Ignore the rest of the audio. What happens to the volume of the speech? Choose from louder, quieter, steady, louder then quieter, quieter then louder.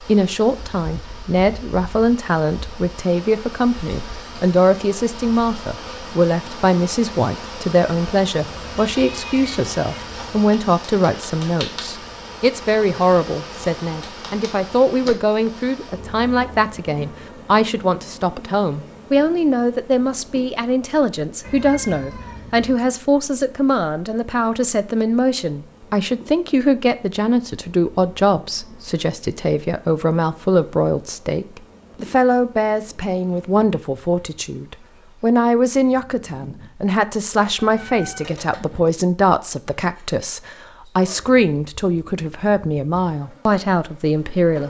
steady.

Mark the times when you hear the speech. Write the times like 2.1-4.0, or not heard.
0.0-44.6.